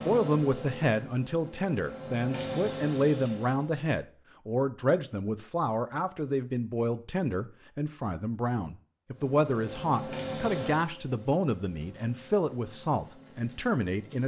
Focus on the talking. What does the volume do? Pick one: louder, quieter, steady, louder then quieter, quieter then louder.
steady.